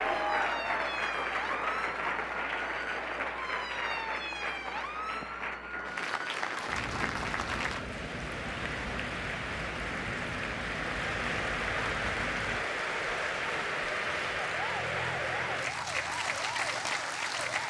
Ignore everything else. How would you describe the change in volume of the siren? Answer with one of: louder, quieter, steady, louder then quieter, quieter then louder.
steady.